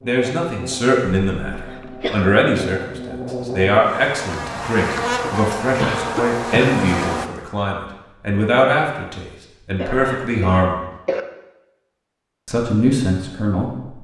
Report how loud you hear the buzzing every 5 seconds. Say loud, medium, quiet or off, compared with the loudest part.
medium, loud, off.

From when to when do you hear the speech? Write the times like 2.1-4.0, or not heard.
0.0-10.8, 12.4-13.9.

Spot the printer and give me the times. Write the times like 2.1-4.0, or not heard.
not heard.